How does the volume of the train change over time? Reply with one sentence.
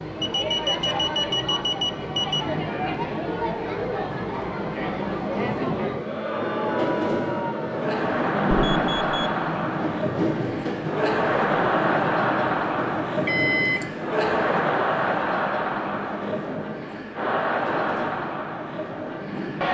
The volume of the train goes up, then down.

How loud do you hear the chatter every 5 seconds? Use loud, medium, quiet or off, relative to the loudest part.
medium, loud, loud, loud.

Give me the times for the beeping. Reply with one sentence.
You can hear the beeping from 0.2 to 2.5 s, from 8.6 to 9.3 s and from 13.2 to 14.1 s.